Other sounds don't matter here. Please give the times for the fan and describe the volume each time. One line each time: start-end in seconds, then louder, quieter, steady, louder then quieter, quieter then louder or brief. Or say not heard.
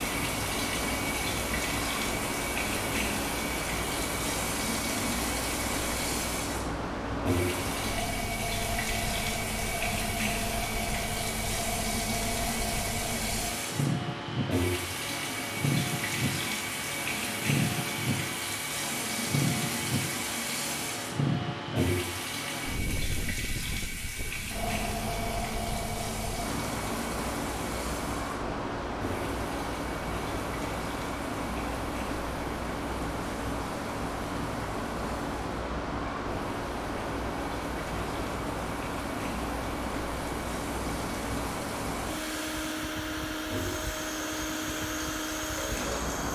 0.0-46.2 steady.